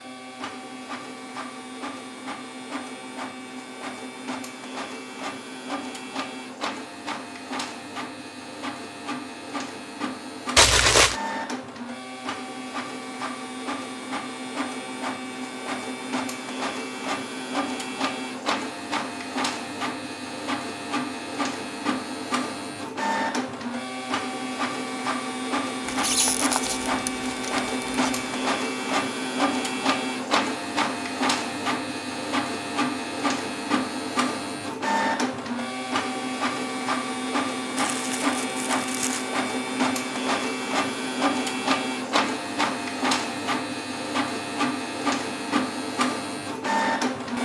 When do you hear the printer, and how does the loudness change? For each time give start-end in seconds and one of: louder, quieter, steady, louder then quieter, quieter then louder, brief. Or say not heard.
0.0-47.4 louder.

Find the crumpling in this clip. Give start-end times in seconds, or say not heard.
10.6-11.2, 25.9-28.3, 37.8-39.3.